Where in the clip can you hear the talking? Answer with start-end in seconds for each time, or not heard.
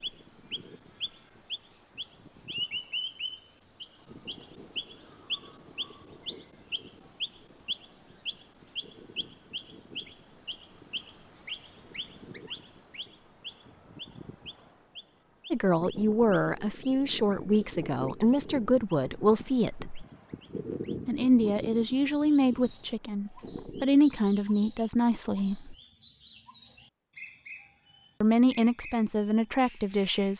15.5-20.1, 21.1-25.8, 28.2-30.3.